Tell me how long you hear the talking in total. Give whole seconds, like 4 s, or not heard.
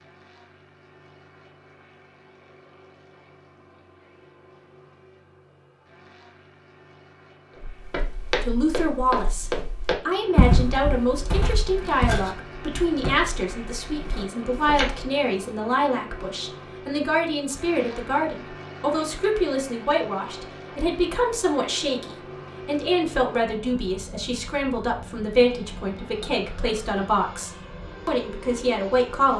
21 s.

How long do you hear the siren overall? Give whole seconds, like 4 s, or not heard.
not heard.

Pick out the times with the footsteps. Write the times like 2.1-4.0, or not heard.
7.6-14.9.